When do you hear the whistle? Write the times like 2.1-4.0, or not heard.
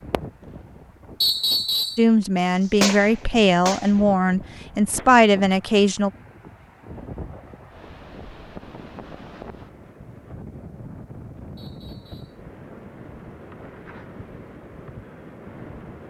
1.2-2.0, 11.6-12.4.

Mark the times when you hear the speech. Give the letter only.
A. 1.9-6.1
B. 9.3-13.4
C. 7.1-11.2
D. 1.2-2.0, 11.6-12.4
A.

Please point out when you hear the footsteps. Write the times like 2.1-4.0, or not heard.
not heard.